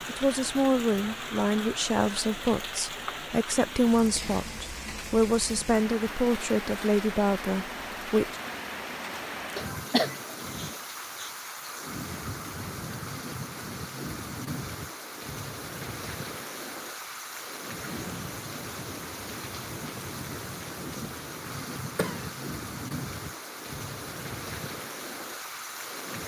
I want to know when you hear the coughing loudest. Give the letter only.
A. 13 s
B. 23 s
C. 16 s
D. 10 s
D.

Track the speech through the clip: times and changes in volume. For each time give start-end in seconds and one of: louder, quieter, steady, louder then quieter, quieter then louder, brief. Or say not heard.
0.1-8.3 steady.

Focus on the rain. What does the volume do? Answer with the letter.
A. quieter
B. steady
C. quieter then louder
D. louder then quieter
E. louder
B.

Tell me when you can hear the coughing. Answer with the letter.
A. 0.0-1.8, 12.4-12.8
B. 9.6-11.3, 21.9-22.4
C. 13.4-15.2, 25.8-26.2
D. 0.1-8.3
B.